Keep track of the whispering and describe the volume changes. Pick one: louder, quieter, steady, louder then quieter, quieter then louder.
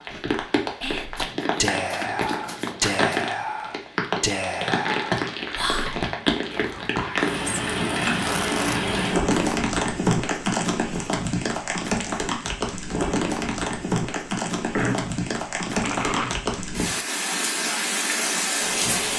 quieter.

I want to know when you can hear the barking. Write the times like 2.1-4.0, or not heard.
not heard.